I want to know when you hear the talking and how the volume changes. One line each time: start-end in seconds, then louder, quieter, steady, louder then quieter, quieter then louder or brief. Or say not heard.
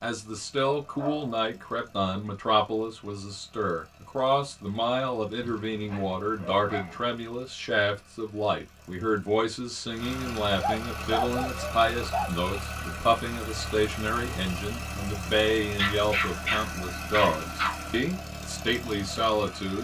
0.0-19.7 steady.